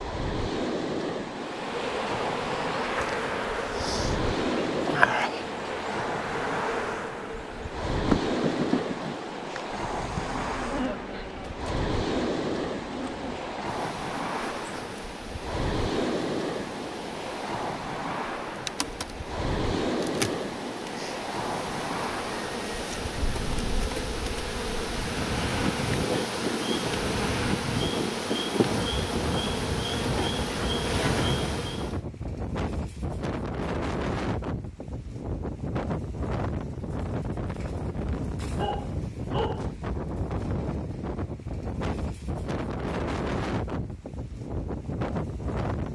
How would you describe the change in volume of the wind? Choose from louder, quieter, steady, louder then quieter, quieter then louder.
steady.